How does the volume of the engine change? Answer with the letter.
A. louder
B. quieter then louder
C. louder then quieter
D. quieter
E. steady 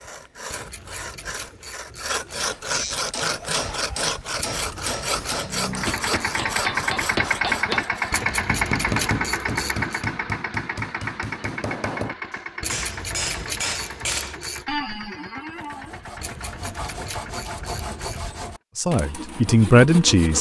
D.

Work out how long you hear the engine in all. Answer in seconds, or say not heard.
13 s.